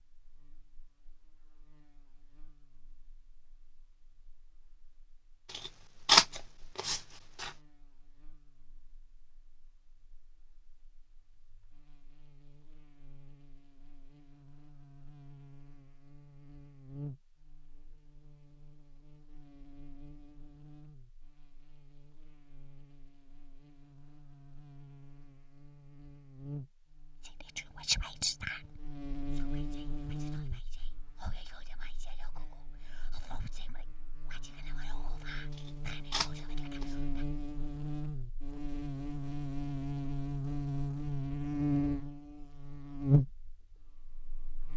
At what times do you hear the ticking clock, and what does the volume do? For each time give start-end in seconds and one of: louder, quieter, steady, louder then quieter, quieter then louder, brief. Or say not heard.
not heard.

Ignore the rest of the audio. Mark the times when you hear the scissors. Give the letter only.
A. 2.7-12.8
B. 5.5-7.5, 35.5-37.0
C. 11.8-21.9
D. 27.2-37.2
B.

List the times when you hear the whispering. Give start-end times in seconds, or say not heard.
27.2-37.2.